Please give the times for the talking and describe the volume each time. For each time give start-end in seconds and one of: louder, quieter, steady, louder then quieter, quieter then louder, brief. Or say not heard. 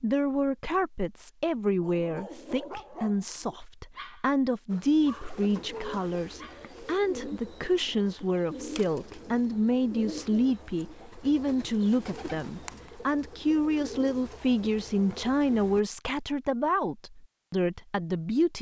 0.0-18.5 steady.